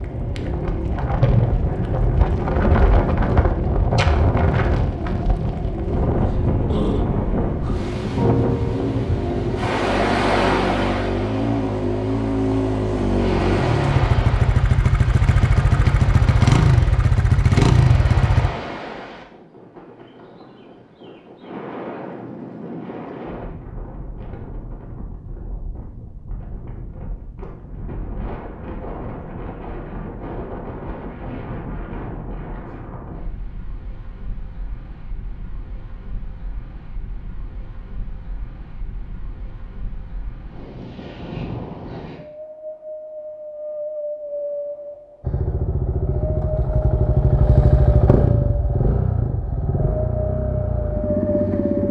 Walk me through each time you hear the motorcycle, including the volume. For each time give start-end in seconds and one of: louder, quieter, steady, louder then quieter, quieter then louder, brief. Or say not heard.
0.0-18.5 louder
45.2-51.8 louder then quieter.